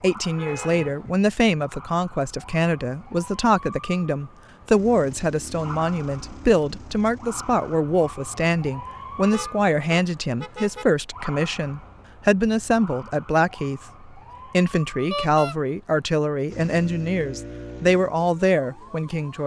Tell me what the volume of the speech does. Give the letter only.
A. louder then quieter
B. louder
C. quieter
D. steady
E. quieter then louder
D.